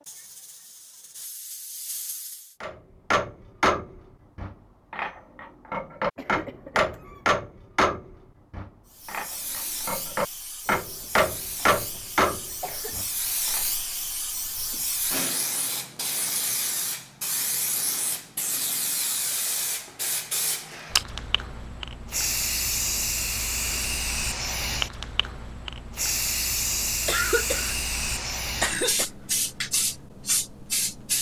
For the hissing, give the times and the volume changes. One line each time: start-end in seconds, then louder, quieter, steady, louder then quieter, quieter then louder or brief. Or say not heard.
0.0-2.5 brief
8.9-31.1 louder.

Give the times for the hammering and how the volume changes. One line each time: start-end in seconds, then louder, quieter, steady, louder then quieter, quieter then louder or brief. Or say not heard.
2.6-13.7 steady.